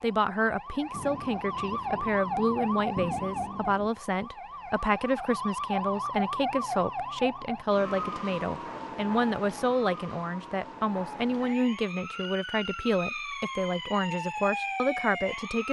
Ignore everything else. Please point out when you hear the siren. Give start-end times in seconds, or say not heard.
0.0-15.6.